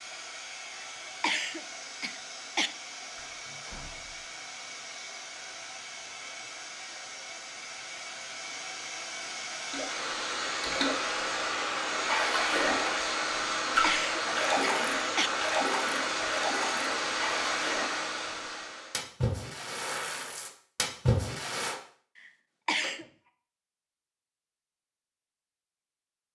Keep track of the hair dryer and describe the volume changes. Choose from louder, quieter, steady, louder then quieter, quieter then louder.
louder.